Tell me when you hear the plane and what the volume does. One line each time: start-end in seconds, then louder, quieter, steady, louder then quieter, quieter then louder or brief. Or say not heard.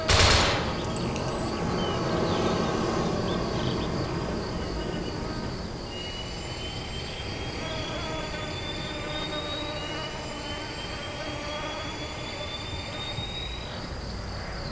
0.0-14.6 quieter.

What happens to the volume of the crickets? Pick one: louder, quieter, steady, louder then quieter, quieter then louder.
steady.